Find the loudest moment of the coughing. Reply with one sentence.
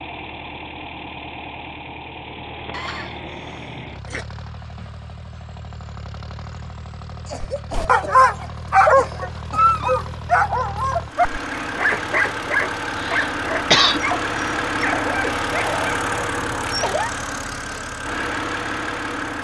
The loudest moment of the coughing is at 14 seconds.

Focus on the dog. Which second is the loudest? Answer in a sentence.
The volume of the dog peaks at 9 seconds.